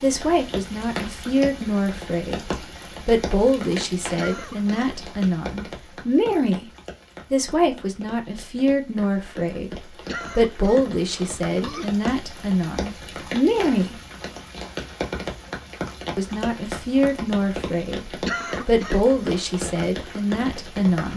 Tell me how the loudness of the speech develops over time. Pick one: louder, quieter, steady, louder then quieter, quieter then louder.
steady.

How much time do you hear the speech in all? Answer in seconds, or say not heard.
18 s.